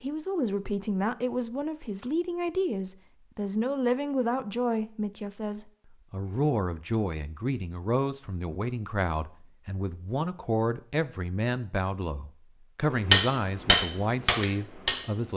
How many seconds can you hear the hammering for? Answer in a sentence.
The hammering can be heard for 2 seconds in total.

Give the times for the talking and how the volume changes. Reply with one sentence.
The talking can be heard from 0.0 to 15.3 s, at a steady volume.